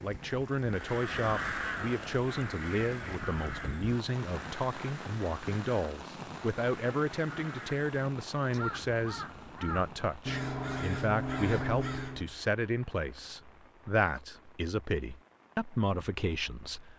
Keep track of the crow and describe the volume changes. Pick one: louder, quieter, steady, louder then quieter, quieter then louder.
quieter then louder.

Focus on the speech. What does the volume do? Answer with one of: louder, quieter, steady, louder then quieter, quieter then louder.
steady.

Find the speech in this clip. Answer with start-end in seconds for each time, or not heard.
0.0-16.9.